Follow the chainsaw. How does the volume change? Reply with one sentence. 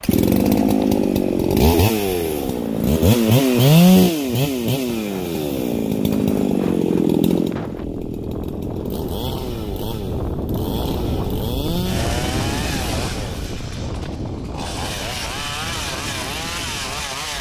The volume of the chainsaw goes down.